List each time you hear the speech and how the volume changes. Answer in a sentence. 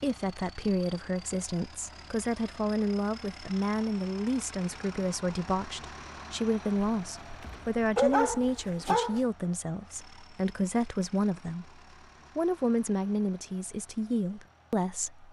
You can hear the speech from 0.0 to 15.2 s, at a steady volume.